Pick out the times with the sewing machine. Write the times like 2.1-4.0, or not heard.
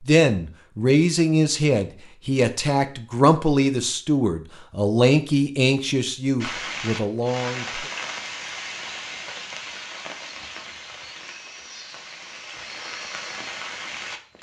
not heard.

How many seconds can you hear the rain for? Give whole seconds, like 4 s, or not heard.
8 s.